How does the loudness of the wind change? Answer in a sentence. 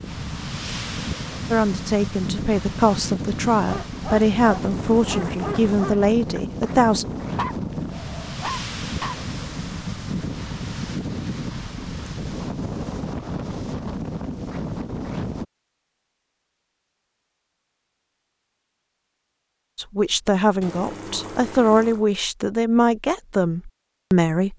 The loudness of the wind stays about the same.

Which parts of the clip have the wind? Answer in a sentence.
The wind can be heard from 0.0 to 15.4 s.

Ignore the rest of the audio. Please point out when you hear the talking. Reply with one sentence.
You can hear the talking from 1.5 to 7.0 s and from 19.8 to 24.5 s.